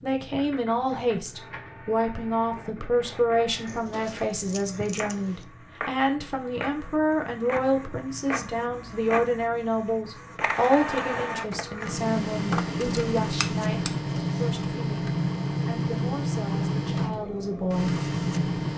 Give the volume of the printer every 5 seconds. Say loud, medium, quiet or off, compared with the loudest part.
quiet, medium, loud, loud.